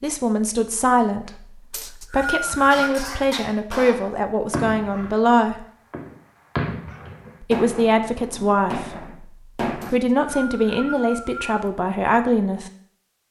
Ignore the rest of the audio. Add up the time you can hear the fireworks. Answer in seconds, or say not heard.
7 s.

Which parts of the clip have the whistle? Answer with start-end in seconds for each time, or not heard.
1.7-2.9, 9.8-11.7.